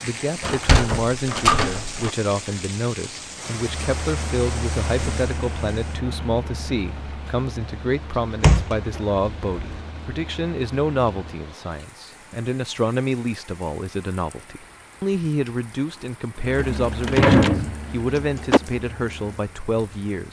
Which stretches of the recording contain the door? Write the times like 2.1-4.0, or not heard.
0.4-2.1, 8.4-9.8, 16.6-18.6.